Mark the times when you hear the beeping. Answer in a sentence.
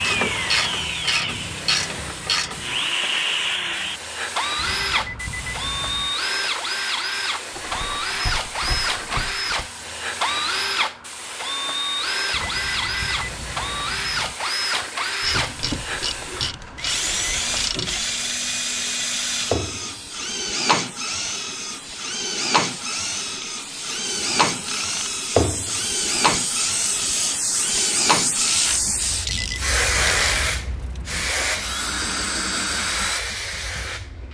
The beeping can be heard from 4.5 to 6.2 s, from 12.3 to 14.3 s and from 29.2 to 31.3 s.